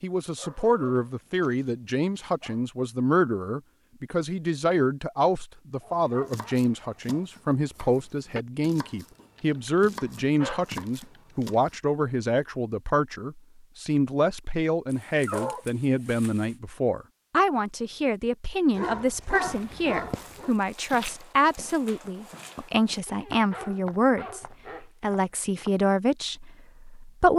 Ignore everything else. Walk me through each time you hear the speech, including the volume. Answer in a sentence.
You can hear the speech from 0.0 to 27.3 s, at a steady volume.